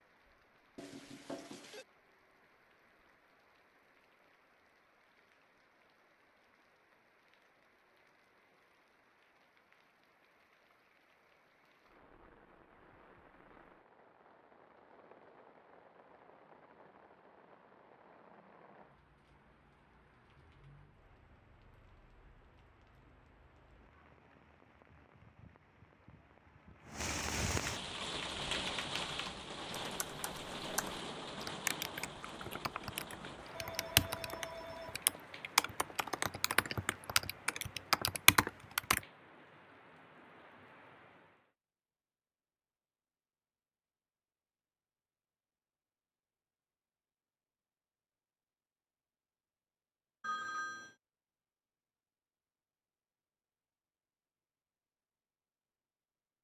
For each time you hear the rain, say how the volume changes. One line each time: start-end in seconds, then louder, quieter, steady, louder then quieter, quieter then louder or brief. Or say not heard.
0.0-41.5 louder then quieter.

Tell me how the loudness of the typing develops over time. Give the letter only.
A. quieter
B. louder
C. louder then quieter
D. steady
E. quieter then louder
B.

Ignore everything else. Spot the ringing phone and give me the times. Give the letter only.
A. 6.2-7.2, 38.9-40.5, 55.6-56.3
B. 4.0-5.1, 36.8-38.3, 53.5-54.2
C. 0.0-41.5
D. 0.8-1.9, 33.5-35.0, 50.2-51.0
D.